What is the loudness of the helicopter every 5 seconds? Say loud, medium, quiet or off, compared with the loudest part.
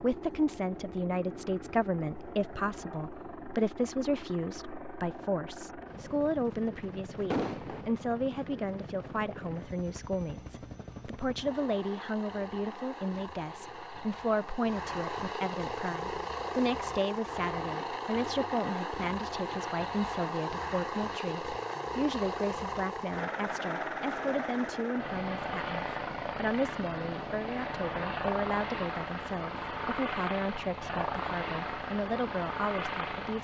medium, medium, medium, loud, loud, loud, loud.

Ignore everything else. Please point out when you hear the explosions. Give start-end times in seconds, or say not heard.
7.3-7.8.